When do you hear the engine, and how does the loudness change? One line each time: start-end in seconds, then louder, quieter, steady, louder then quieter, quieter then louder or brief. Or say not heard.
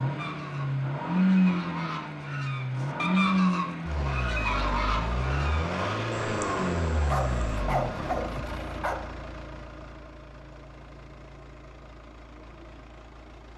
0.0-13.5 quieter.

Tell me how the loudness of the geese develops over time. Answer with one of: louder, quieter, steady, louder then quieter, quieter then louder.
louder then quieter.